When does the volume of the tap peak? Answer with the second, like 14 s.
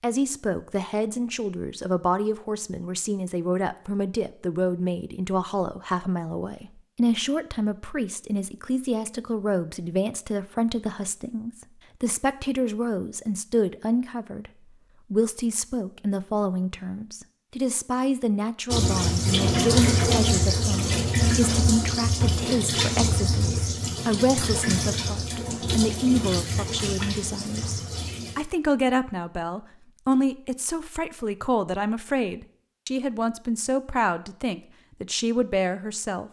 20 s.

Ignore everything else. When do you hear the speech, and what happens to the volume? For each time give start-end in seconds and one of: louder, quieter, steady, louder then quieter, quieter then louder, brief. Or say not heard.
0.0-14.5 steady
15.1-36.2 steady.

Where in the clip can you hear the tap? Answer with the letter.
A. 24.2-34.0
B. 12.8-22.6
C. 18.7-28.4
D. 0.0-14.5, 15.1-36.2
C.